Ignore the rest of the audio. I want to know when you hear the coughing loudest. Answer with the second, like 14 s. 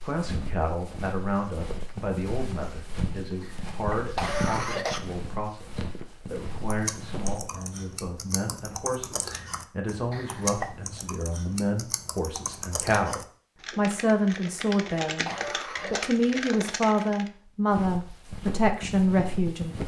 4 s.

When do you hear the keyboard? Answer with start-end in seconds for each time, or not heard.
6.7-17.3.